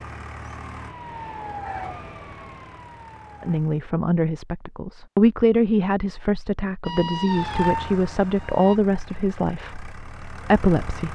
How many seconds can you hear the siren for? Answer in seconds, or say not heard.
5 s.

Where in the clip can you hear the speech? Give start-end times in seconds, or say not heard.
3.4-11.1.